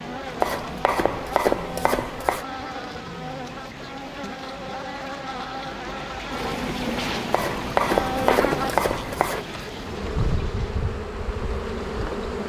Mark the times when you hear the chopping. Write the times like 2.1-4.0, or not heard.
0.4-2.5, 7.3-9.4.